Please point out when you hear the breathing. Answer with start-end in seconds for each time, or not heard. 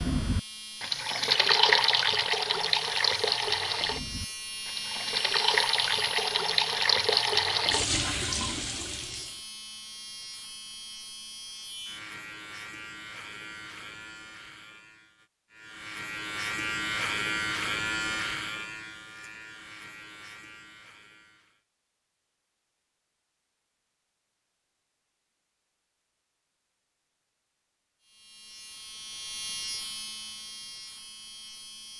not heard.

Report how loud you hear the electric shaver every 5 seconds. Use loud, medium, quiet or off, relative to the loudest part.
medium, medium, medium, loud, quiet, medium, medium.